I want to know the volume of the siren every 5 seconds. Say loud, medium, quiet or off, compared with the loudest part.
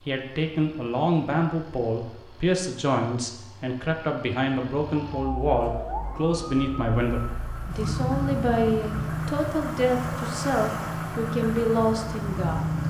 off, loud, loud.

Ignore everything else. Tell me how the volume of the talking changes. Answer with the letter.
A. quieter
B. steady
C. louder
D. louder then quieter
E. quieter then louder
B.